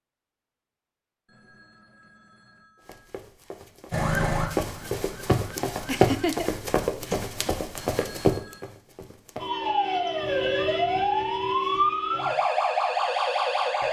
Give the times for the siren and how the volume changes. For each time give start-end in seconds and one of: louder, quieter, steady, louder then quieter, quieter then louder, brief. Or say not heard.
3.9-6.3 brief
9.3-13.8 steady.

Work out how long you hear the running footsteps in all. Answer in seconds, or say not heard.
7 s.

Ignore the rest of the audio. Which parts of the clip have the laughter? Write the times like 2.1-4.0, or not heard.
5.8-6.5.